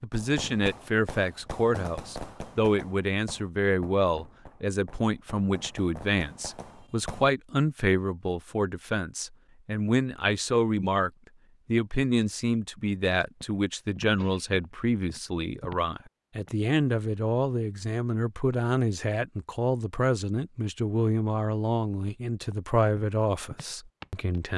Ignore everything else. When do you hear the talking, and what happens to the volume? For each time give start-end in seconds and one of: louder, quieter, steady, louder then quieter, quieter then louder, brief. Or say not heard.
0.0-24.5 steady.